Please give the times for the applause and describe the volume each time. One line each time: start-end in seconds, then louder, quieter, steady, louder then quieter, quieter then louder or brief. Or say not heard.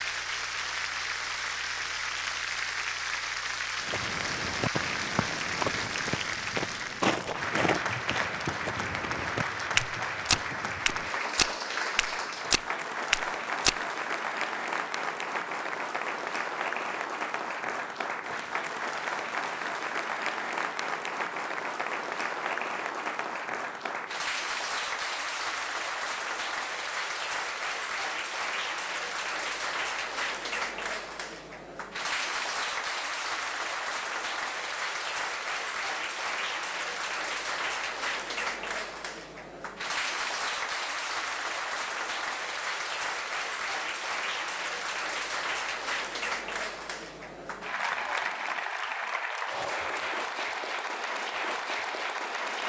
0.0-52.6 steady.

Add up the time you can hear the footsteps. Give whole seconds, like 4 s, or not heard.
10 s.